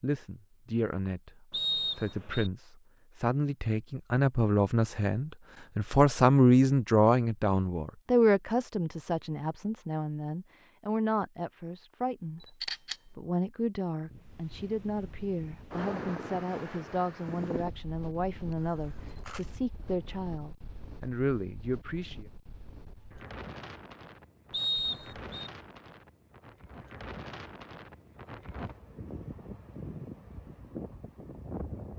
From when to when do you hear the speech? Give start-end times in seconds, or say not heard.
0.0-22.2.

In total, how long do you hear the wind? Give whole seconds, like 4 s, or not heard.
18 s.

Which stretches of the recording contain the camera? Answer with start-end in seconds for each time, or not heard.
12.4-12.9, 18.5-19.4.